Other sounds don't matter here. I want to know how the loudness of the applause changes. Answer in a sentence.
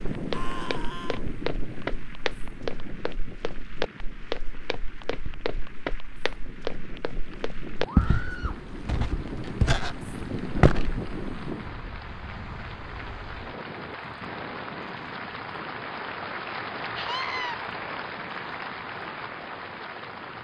The volume of the applause goes up.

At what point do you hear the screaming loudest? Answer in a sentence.
The volume of the screaming peaks at 17 seconds.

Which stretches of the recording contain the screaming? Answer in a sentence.
The screaming can be heard from 0.3 to 1.2 s, from 7.8 to 8.6 s and from 16.9 to 17.6 s.